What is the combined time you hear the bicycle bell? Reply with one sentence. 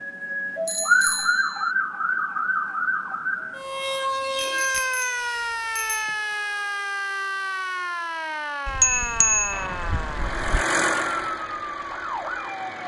You can hear the bicycle bell for 5 seconds altogether.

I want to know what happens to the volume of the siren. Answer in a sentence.
The volume of the siren goes down.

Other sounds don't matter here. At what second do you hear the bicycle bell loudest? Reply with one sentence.
The volume of the bicycle bell peaks at 9 seconds.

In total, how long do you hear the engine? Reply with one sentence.
The engine can be heard for 3 seconds in total.